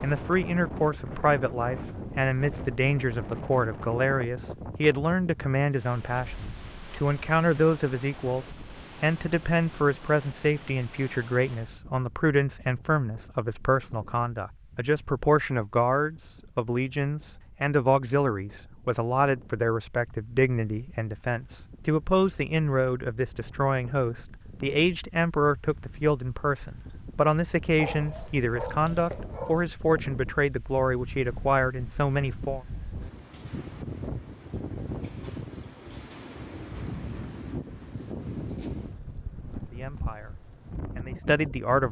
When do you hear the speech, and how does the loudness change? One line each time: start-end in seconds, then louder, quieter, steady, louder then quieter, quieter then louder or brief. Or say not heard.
0.0-32.6 steady
39.5-41.8 brief.